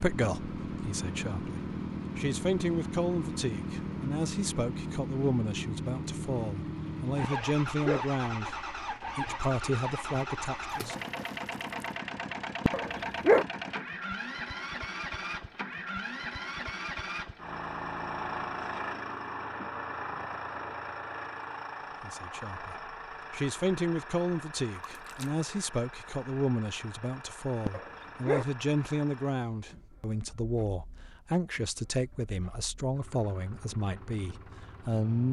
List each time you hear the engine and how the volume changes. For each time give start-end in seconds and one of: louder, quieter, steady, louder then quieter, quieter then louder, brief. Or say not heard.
0.0-35.2 quieter.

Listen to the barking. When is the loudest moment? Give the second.
13 s.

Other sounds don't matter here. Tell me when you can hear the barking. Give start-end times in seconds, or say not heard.
7.2-8.1, 12.7-13.4, 27.6-28.4.